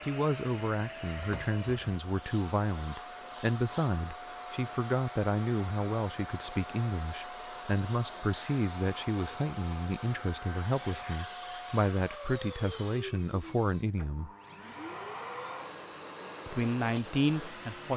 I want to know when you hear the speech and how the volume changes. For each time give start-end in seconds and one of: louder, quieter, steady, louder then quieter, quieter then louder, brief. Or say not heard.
0.0-14.3 steady
16.4-17.9 brief.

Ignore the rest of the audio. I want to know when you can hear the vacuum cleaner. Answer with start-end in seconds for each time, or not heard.
0.0-17.9.